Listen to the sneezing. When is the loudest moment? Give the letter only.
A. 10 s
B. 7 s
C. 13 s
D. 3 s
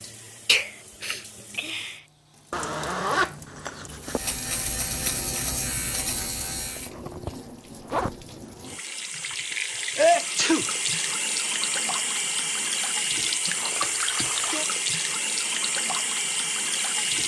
A.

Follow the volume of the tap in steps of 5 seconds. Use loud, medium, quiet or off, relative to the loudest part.
quiet, medium, loud, loud.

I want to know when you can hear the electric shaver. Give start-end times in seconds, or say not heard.
4.0-6.9.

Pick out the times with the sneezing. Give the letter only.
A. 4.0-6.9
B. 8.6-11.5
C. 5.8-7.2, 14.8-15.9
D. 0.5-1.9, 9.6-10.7
D.